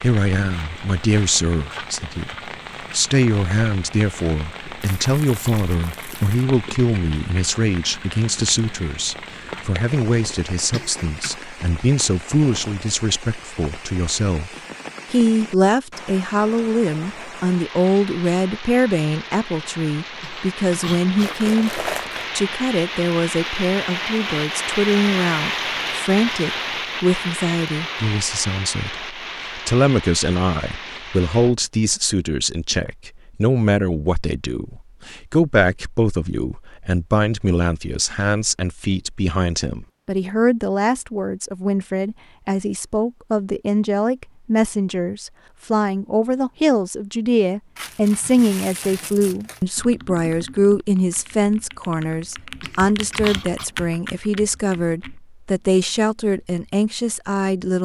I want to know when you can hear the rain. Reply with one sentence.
The rain can be heard from 0.0 to 31.6 s.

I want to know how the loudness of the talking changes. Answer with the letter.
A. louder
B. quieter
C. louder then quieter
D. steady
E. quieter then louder
D.